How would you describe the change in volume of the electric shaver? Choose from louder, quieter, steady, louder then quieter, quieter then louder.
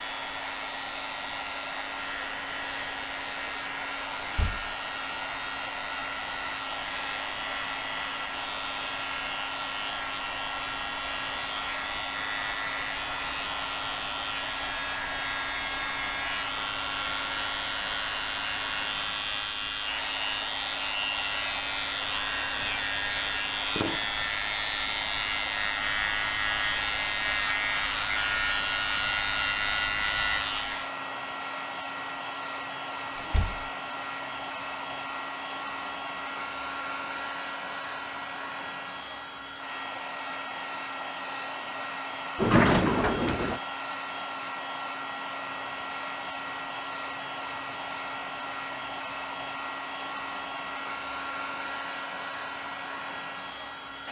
louder.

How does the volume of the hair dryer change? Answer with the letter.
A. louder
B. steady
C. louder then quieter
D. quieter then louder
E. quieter
B.